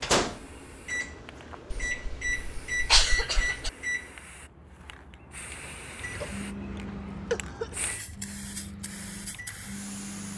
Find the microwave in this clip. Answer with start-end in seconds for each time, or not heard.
0.0-4.2, 6.0-10.3.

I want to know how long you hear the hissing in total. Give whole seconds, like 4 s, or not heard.
10 s.